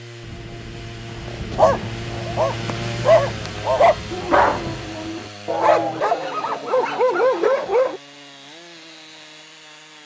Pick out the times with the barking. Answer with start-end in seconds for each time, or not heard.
1.2-8.0.